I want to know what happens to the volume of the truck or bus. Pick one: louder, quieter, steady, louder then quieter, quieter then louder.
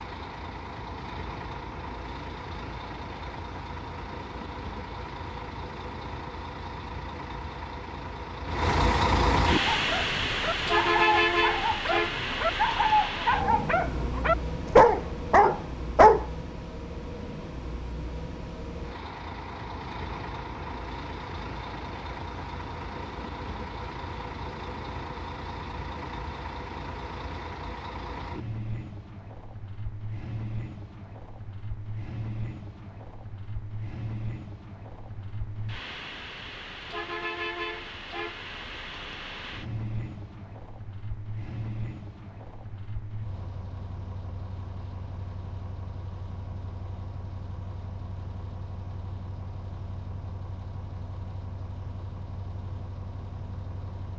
quieter.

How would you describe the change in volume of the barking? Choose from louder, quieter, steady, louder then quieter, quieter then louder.
louder.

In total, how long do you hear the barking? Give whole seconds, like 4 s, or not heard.
7 s.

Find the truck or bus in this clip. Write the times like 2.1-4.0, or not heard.
0.0-54.1.